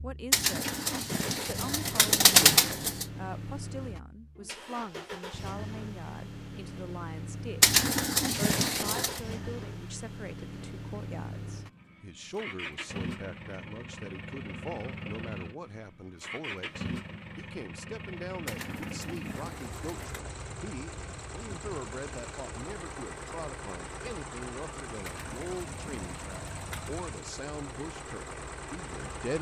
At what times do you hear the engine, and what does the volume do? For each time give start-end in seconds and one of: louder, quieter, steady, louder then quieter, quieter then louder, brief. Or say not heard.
0.0-29.3 steady.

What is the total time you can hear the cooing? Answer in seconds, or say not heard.
8 s.